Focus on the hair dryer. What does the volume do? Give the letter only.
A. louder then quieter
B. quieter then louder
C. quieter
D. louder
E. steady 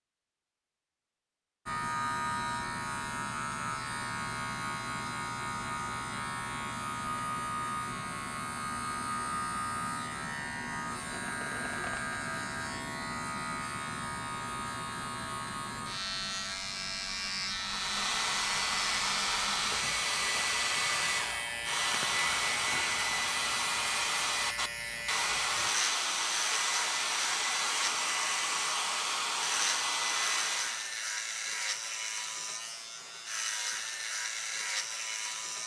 E.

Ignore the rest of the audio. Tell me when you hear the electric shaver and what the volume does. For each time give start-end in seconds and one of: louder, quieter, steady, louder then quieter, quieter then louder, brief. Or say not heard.
1.6-35.6 steady.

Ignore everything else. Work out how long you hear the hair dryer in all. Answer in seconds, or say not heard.
13 s.